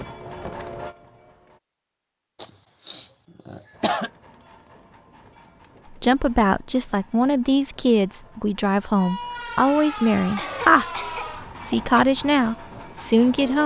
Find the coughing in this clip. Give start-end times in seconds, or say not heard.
2.4-4.1, 10.3-12.1.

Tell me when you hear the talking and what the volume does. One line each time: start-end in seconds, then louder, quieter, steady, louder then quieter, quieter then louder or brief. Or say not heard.
5.9-10.8 steady
11.6-13.6 brief.